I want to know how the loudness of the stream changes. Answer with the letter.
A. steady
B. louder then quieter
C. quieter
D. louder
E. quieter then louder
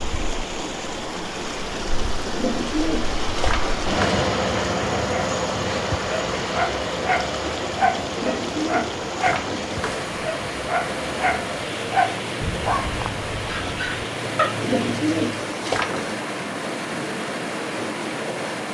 A.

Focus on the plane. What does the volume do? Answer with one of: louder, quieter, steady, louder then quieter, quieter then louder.
quieter.